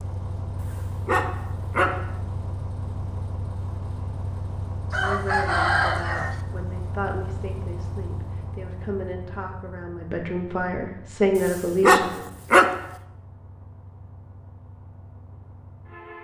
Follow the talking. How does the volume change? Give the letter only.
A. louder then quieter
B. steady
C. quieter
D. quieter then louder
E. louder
E.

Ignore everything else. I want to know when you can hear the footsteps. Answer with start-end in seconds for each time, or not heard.
not heard.